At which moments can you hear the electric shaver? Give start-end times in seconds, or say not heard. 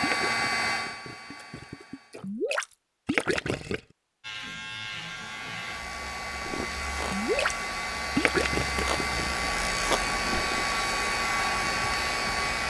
4.2-12.6.